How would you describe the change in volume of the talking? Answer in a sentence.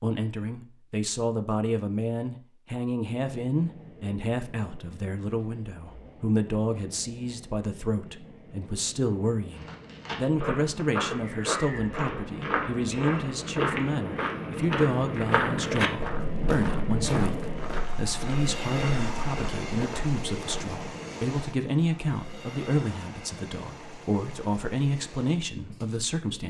The volume of the talking stays about the same.